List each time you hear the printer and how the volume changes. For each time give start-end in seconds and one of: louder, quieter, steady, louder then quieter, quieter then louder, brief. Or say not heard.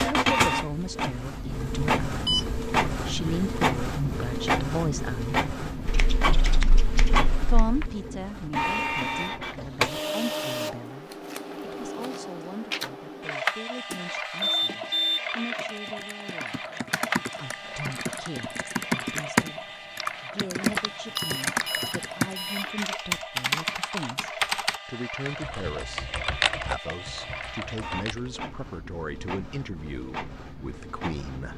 0.0-31.5 quieter.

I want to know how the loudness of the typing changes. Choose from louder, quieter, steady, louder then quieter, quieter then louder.
louder then quieter.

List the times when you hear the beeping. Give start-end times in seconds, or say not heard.
2.2-2.9, 13.8-15.7, 21.1-22.7.